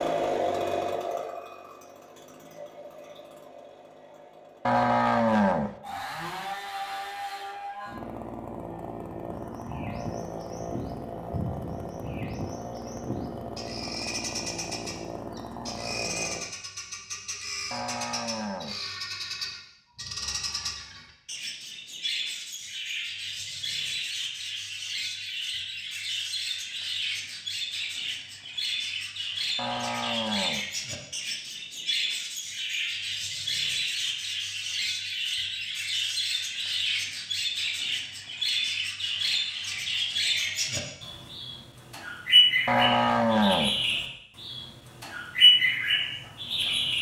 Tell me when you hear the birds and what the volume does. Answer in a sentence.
You can hear the birds from 9.1 to 46.9 s, getting louder.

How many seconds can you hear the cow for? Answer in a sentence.
You can hear the cow for 4 seconds altogether.